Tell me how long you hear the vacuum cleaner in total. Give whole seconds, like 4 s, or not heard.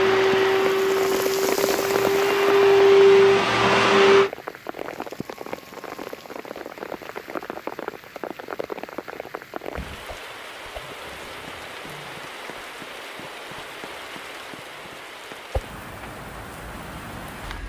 4 s.